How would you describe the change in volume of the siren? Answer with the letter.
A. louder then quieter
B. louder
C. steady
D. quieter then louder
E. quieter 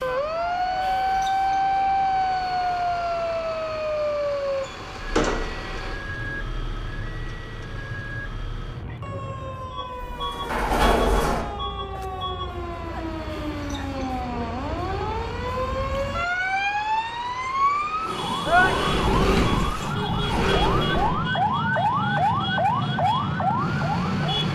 D.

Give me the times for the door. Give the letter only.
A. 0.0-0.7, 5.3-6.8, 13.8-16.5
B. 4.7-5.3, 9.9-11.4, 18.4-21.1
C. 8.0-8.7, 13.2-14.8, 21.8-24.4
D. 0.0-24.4
B.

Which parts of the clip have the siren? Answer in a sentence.
You can hear the siren from 0.0 to 24.4 s.